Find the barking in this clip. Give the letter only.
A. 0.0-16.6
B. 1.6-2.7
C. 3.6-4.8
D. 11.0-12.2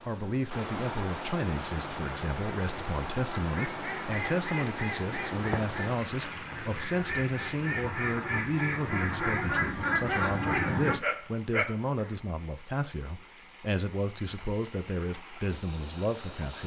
D.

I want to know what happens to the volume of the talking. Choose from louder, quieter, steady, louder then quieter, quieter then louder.
steady.